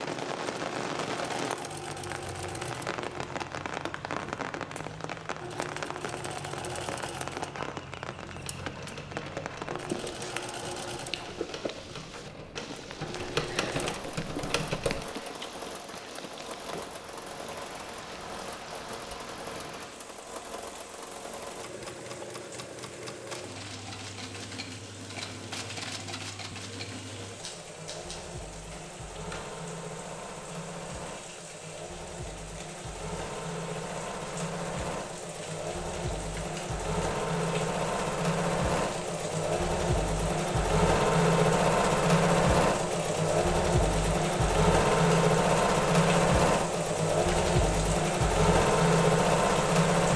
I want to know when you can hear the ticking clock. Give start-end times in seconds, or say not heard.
not heard.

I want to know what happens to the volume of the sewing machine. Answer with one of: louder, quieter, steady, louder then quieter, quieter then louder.
louder.